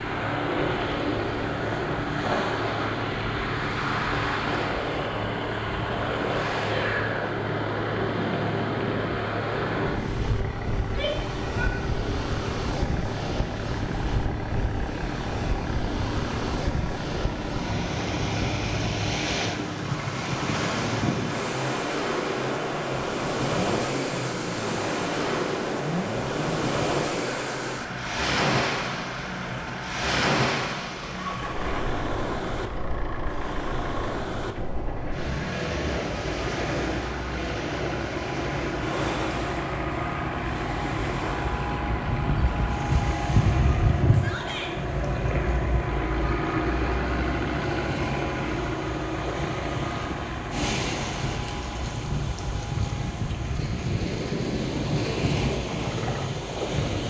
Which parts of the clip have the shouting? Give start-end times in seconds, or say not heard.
10.8-11.8, 44.1-44.8.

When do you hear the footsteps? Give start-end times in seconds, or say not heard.
not heard.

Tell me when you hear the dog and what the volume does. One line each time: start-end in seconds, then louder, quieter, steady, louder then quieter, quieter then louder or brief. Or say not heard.
not heard.